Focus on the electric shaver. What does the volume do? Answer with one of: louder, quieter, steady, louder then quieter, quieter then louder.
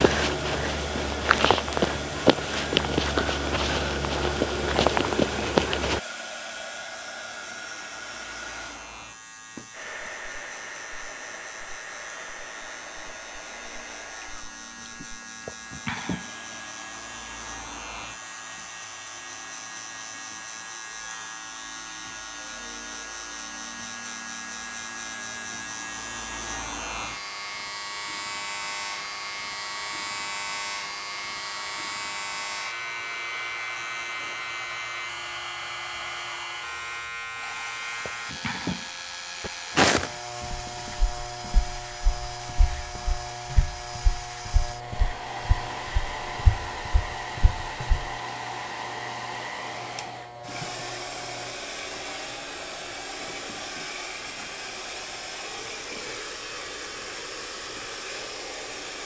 louder then quieter.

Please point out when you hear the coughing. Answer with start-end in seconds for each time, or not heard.
14.8-16.3, 37.4-38.9.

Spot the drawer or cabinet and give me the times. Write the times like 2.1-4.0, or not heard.
not heard.